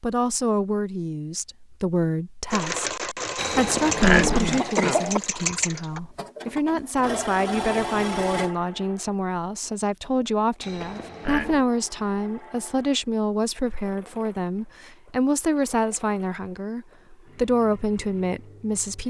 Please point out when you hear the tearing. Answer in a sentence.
You can't hear the tearing here.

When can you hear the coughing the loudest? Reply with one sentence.
The volume of the coughing peaks at 4 seconds.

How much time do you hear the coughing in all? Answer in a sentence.
The coughing can be heard for 3 seconds in total.